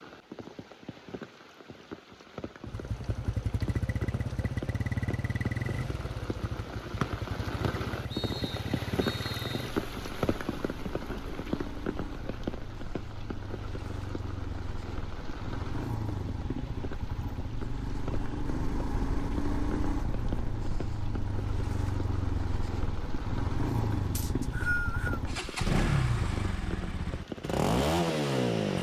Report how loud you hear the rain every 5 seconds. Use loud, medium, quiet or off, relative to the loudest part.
medium, loud, loud, medium, medium, medium.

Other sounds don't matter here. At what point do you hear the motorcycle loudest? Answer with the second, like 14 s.
28 s.